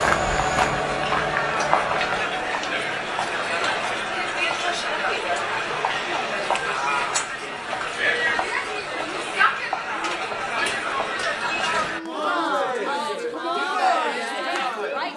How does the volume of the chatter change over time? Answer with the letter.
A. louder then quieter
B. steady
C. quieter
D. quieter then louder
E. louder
B.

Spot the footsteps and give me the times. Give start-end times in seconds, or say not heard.
0.0-2.2.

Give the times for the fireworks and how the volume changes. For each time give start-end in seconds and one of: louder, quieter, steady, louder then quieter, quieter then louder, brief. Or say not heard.
not heard.